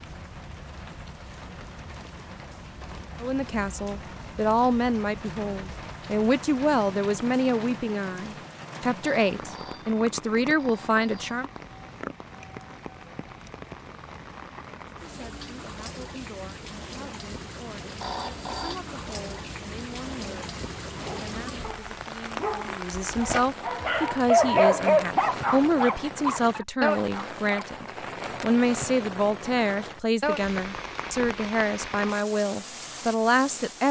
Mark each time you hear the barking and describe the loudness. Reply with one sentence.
You can hear the barking from 20.9 to 27.7 s, getting louder then quieter.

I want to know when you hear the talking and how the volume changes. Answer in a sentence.
The talking can be heard from 3.2 to 11.5 s, at a steady volume; and from 14.8 to 33.8 s, getting louder.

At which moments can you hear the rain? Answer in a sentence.
You can hear the rain from 0.0 to 33.8 s.